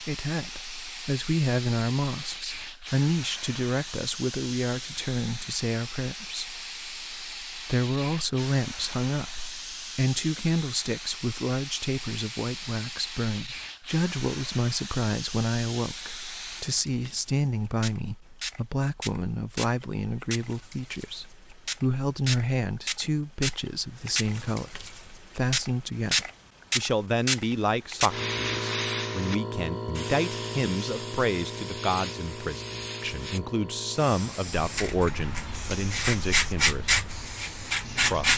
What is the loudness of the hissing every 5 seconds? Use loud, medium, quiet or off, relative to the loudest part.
medium, medium, medium, medium, medium, loud, medium, quiet.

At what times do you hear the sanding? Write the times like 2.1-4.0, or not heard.
34.5-38.3.